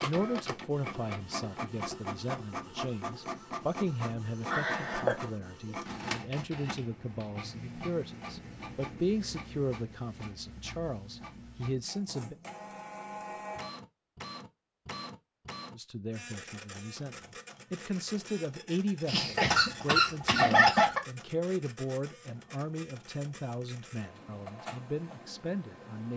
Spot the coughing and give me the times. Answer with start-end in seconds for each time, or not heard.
4.5-5.3, 19.1-21.0.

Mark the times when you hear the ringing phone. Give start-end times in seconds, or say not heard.
not heard.